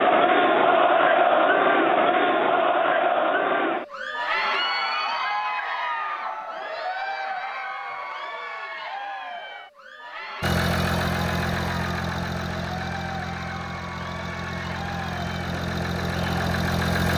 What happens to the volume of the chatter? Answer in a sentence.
The volume of the chatter goes down.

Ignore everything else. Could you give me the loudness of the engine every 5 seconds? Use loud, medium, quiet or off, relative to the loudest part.
off, off, loud, loud.